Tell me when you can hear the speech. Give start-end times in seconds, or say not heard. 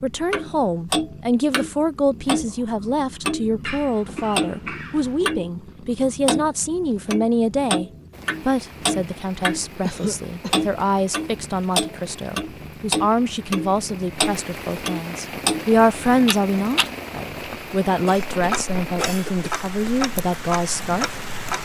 0.0-21.1.